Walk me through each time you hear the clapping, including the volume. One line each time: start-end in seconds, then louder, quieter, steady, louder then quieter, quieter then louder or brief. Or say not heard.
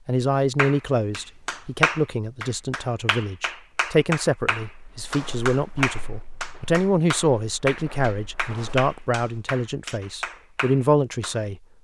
0.6-11.4 quieter.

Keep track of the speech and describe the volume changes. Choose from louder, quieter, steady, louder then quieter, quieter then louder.
steady.